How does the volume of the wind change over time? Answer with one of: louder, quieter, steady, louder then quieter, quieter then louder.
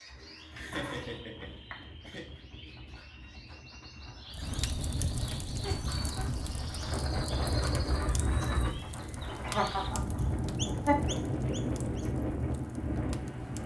louder.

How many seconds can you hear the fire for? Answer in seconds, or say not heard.
9 s.